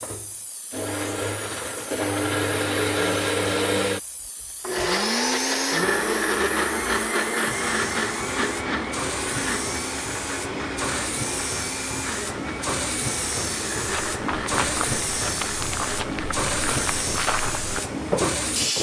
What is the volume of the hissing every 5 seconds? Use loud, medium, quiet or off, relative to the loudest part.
quiet, medium, loud, loud.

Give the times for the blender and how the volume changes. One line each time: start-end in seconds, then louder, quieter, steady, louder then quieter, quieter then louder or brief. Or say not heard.
0.0-18.7 quieter.